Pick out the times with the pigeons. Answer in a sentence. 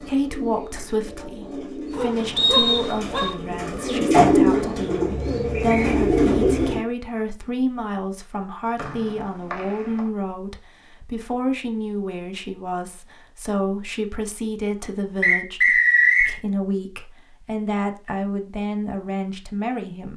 The pigeons can be heard from 0.0 to 6.8 s.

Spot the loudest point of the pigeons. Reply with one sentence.
The volume of the pigeons peaks at 4 seconds.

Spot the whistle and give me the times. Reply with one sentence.
You can hear the whistle from 2.4 to 3.3 s, from 8.8 to 10.0 s and from 15.2 to 16.4 s.